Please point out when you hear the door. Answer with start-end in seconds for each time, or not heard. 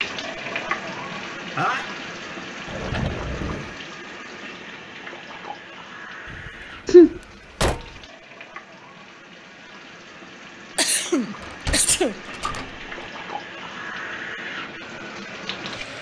2.6-3.8, 6.2-8.1, 11.4-13.1.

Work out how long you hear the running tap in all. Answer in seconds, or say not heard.
16 s.